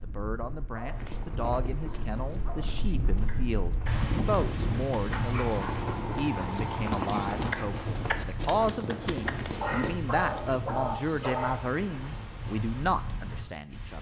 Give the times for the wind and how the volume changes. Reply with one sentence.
You can hear the wind from 0.0 to 13.9 s, getting louder then quieter.